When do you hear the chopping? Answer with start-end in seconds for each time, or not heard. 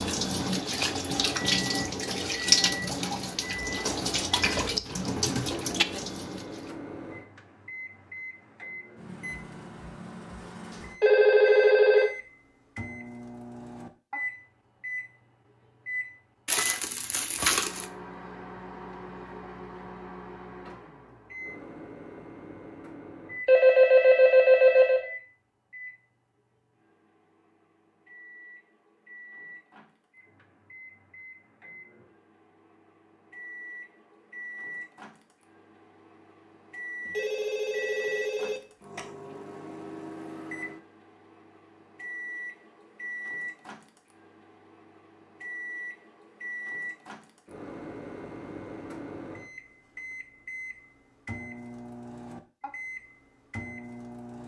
not heard.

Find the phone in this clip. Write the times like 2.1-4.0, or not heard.
11.0-12.1, 23.4-25.1, 37.0-39.0.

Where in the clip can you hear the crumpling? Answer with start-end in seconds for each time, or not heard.
16.4-17.9.